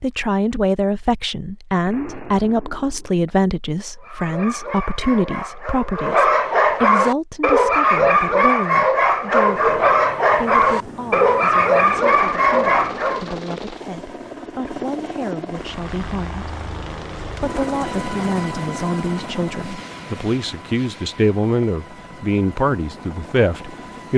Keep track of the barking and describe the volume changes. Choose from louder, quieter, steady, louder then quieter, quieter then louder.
louder.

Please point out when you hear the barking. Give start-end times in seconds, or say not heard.
4.0-13.3.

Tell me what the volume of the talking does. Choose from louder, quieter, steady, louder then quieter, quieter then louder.
quieter then louder.